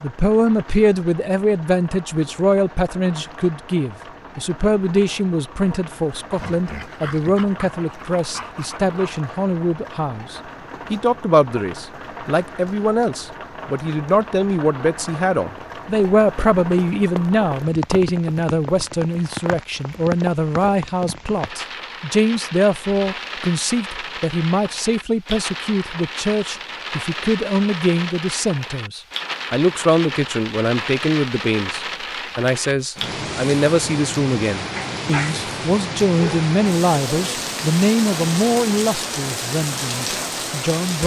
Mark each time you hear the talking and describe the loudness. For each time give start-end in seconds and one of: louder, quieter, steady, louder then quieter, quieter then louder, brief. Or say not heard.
0.0-41.0 steady.